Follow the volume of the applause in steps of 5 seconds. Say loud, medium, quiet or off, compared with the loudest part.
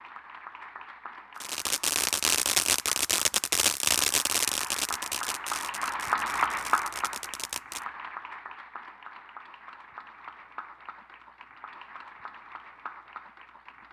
medium, loud, quiet.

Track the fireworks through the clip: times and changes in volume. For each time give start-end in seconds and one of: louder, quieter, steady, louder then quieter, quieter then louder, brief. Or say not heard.
1.4-7.8 quieter.